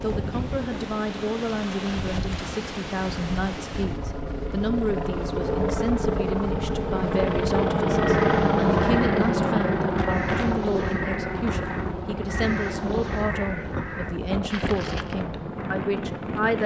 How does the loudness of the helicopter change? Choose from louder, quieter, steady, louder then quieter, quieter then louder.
louder then quieter.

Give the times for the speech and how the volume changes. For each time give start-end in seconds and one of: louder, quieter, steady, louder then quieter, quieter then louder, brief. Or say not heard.
0.0-16.6 steady.